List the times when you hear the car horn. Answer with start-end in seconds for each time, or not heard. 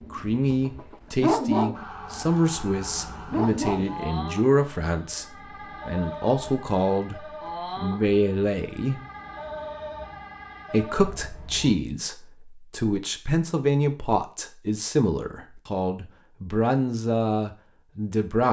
not heard.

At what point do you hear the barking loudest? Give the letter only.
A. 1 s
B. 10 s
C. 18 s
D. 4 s
A.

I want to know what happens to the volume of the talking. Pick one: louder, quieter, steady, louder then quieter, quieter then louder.
steady.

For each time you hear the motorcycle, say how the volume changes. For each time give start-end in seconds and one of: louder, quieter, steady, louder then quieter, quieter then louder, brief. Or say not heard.
not heard.